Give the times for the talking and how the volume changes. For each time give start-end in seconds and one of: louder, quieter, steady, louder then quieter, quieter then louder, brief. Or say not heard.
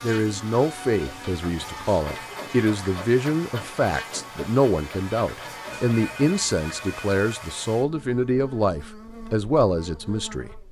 0.0-10.5 steady.